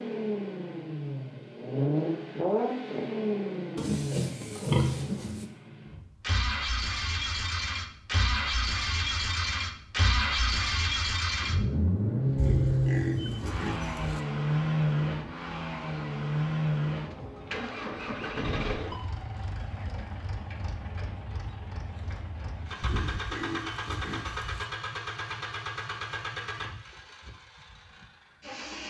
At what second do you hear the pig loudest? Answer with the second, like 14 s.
5 s.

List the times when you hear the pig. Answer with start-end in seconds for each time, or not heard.
3.8-5.5, 12.3-14.2, 22.8-24.6.